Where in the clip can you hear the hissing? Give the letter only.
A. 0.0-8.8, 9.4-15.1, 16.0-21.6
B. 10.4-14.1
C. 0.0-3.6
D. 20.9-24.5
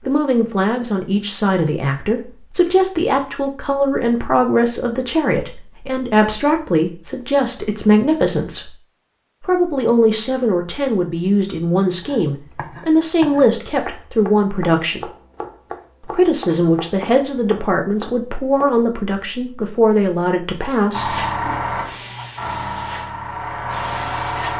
D.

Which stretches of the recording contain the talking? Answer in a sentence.
The talking can be heard from 0.0 to 8.8 s, from 9.4 to 15.1 s and from 16.0 to 21.6 s.